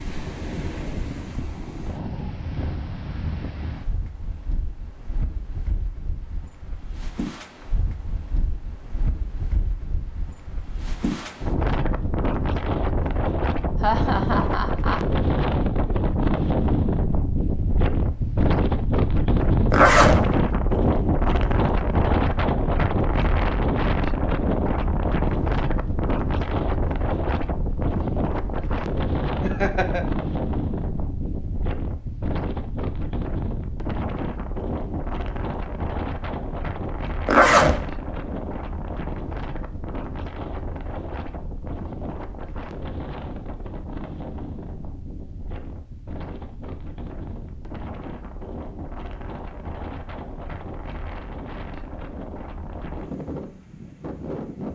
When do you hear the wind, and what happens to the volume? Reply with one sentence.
You can hear the wind from 0.0 to 54.7 s, getting louder then quieter.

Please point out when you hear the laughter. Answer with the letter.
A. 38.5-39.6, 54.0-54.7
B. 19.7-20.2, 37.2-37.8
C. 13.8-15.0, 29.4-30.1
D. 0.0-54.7
C.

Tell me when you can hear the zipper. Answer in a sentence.
You can hear the zipper from 19.7 to 20.2 s and from 37.2 to 37.8 s.